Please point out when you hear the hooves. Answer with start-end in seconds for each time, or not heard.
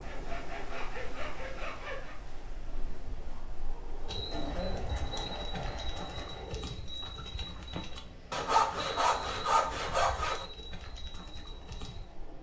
4.0-12.1.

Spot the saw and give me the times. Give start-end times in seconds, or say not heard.
0.0-2.1, 4.3-6.5, 8.3-10.4.